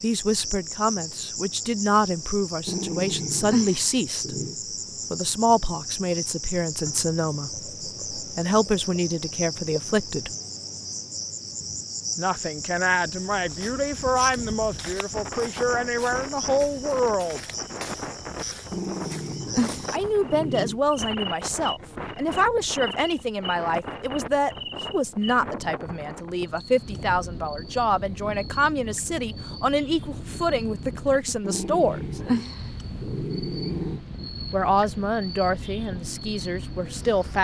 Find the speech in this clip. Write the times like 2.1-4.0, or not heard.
0.0-4.3, 5.1-10.3, 12.2-17.4, 19.9-32.2, 34.5-37.4.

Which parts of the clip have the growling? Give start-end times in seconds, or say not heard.
2.6-4.5, 18.7-20.8, 31.4-34.0.